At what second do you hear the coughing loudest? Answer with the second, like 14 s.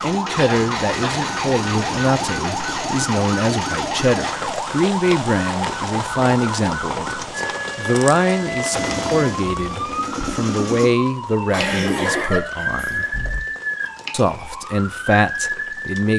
12 s.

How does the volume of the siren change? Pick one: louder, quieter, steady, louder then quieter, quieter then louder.
steady.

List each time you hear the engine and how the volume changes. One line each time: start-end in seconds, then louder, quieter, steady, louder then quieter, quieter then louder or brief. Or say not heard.
0.0-4.3 steady
8.7-10.9 brief.